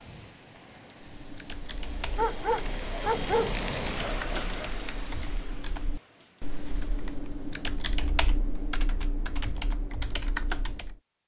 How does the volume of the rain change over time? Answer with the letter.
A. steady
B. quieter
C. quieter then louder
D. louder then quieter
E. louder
D.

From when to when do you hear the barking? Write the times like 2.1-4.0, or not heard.
2.1-4.7.